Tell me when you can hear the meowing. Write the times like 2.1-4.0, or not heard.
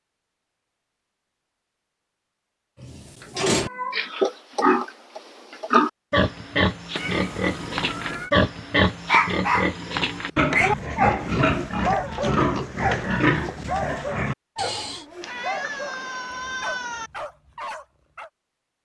3.5-4.1, 7.0-8.3, 15.2-17.1.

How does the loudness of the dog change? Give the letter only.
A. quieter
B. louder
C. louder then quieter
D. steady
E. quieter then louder
A.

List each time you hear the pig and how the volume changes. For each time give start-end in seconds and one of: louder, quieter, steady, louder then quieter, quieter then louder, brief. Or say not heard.
2.8-15.1 steady.